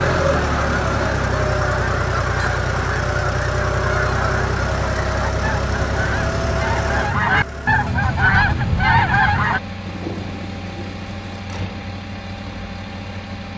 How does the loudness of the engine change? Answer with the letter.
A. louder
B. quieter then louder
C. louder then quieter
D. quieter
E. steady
D.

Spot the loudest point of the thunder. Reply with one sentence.
The volume of the thunder peaks at 10 seconds.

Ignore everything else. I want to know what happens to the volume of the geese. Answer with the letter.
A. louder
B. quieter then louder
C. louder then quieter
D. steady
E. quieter
A.